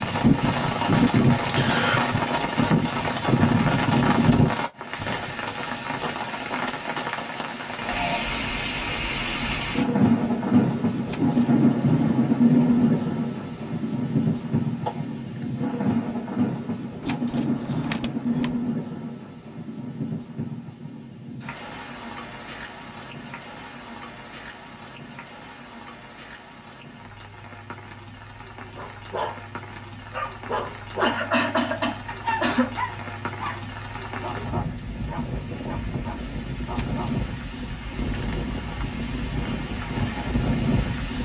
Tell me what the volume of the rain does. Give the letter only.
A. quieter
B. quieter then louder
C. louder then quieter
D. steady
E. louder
B.